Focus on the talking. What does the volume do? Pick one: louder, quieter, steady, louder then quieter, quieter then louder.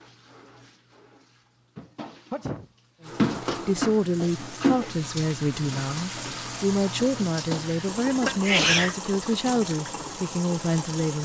steady.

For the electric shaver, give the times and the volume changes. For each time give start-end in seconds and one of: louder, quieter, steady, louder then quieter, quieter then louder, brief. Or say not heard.
not heard.